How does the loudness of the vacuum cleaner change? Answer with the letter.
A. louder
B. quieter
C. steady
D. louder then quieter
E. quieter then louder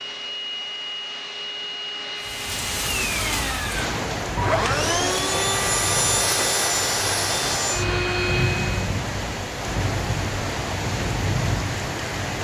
A.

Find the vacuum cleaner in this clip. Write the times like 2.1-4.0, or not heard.
0.0-8.9.